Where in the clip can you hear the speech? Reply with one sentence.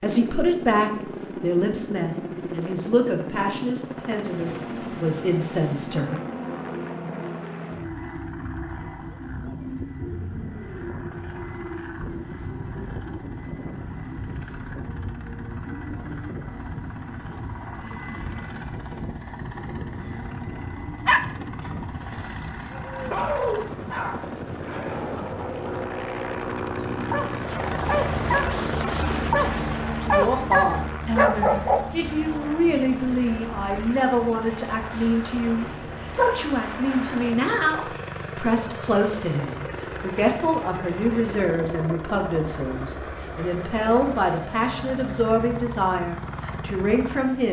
The speech can be heard from 0.0 to 6.2 s and from 30.1 to 47.4 s.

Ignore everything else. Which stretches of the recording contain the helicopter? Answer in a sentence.
You can hear the helicopter from 0.0 to 47.4 s.